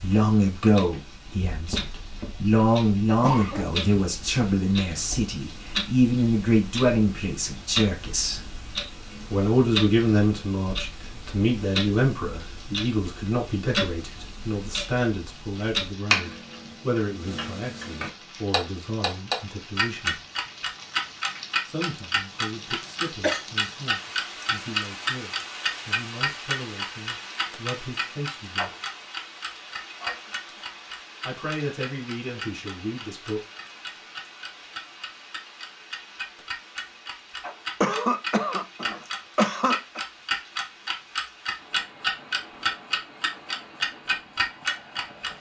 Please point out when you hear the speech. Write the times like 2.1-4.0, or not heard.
0.0-8.4, 9.3-20.2, 21.6-28.7, 31.2-33.4.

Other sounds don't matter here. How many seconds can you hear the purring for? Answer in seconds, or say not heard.
not heard.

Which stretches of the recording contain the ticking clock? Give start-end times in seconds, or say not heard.
0.0-45.3.